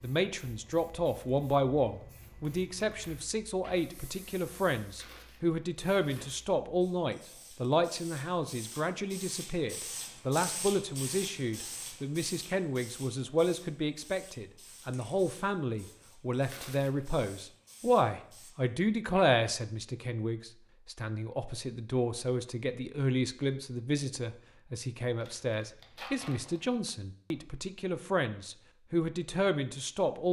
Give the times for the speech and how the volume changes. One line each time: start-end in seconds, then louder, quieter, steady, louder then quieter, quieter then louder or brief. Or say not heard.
0.0-30.2 steady.